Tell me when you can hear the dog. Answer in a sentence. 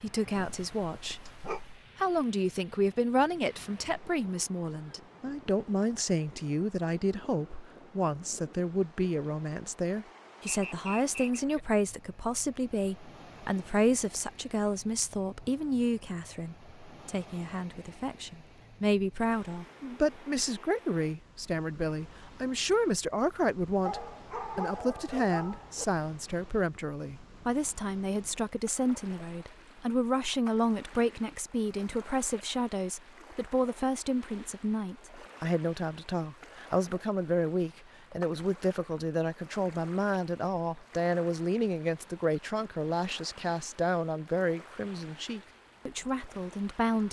You can hear the dog from 0.3 to 1.8 s and from 23.9 to 25.9 s.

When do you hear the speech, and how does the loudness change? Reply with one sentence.
The speech can be heard from 0.0 to 47.0 s, at a steady volume.